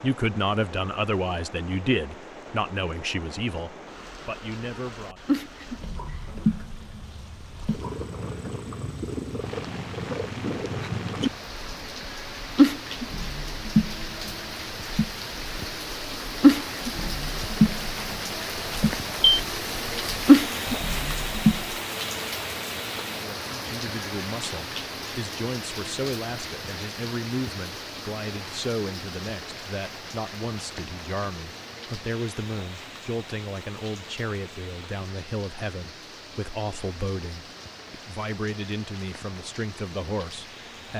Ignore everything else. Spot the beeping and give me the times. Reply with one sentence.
The beeping can be heard from 18.8 to 19.4 s.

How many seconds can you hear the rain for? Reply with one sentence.
The rain can be heard for 41 seconds in total.